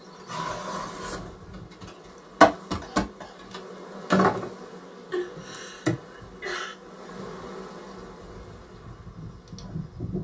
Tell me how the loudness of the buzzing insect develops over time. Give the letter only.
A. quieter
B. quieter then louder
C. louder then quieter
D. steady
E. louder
C.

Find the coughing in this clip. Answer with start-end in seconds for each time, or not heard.
2.8-3.4, 5.1-6.8.